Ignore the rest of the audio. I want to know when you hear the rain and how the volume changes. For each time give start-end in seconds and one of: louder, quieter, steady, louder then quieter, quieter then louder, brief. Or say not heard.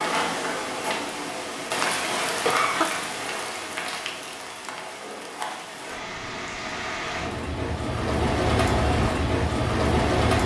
0.0-10.4 quieter then louder.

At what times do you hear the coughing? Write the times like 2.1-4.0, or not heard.
2.2-2.9.